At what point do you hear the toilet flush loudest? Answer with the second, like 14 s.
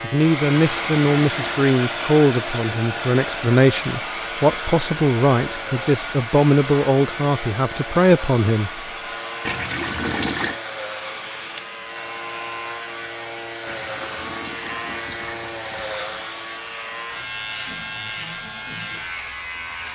10 s.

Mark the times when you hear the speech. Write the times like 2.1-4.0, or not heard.
0.0-8.8.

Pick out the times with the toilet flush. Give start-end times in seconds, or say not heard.
0.7-1.7, 9.4-10.6, 13.7-16.2.